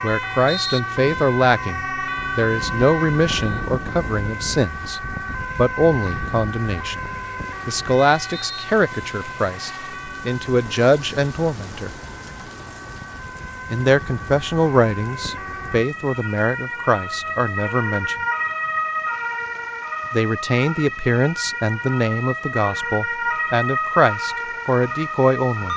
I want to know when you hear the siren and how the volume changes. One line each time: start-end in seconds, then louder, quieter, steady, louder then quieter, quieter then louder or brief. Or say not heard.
0.0-25.7 quieter then louder.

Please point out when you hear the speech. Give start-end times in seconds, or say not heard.
0.0-7.0, 7.7-11.9, 13.7-18.2, 20.1-25.7.